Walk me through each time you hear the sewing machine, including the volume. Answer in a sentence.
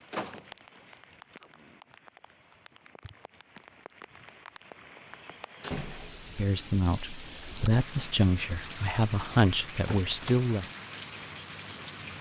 You can't hear the sewing machine here.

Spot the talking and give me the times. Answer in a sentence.
You can hear the talking from 6.3 to 10.7 s.